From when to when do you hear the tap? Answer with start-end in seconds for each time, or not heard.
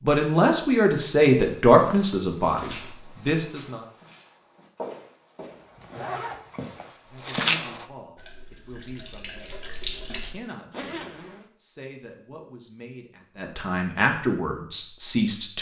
8.2-10.3.